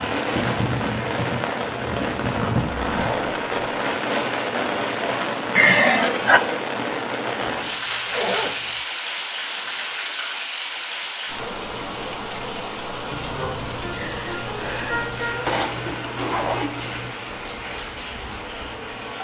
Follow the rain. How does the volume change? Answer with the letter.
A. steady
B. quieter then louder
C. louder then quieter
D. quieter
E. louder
D.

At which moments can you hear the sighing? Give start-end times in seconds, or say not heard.
5.5-6.4, 13.1-15.6.